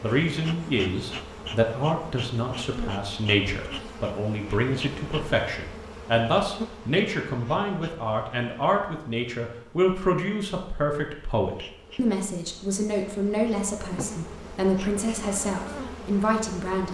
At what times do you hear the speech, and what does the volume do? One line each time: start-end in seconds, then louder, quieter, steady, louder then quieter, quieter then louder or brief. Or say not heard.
0.0-16.8 steady.